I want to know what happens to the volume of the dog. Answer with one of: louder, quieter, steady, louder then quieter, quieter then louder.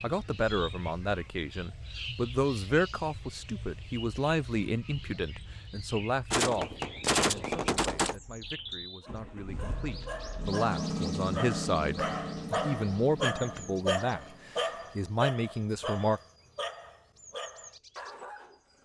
louder then quieter.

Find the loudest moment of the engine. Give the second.
11 s.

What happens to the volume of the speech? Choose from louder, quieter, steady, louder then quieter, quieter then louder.
quieter then louder.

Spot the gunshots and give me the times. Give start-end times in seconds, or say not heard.
6.3-8.2.